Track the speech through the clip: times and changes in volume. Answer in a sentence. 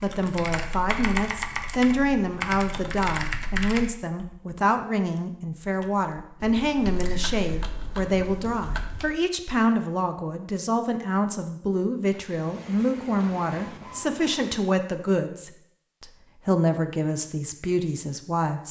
You can hear the speech from 0.0 to 18.6 s, at a steady volume.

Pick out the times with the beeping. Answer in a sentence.
The beeping can't be heard in this clip.